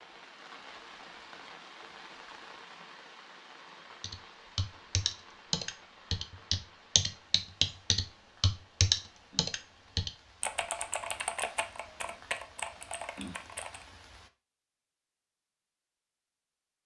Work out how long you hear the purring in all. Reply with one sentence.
The purring can't be heard in this clip.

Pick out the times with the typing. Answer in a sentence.
You can hear the typing from 4.0 to 13.8 s.